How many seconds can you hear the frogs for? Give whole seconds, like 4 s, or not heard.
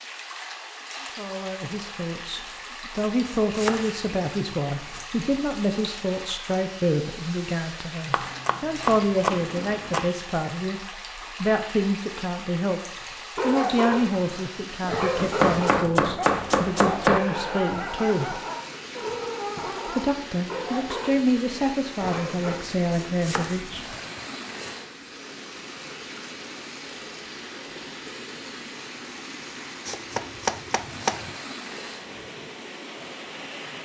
not heard.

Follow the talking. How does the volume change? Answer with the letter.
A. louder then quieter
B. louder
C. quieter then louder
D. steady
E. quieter
D.